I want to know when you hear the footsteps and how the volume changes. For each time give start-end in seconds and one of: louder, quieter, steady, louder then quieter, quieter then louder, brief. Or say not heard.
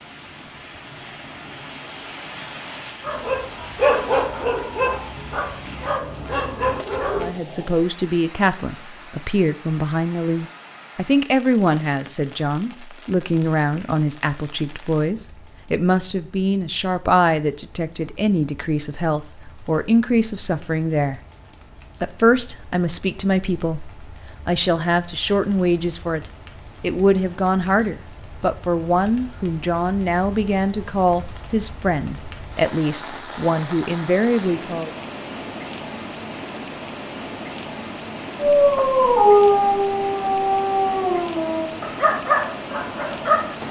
not heard.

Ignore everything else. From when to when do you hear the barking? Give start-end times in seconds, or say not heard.
3.0-7.3, 38.4-43.5.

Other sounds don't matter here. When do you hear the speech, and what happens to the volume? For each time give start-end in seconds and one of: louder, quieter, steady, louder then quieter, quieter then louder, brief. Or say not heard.
7.2-21.2 steady
22.0-34.9 steady.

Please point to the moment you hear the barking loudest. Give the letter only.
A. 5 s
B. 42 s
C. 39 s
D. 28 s
C.